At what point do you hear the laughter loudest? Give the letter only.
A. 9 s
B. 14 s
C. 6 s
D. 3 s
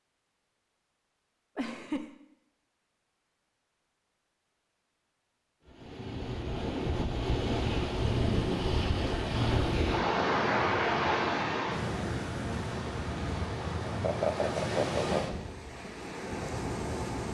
B.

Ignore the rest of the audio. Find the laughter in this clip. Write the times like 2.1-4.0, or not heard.
1.6-2.1, 8.3-8.8, 14.0-15.2.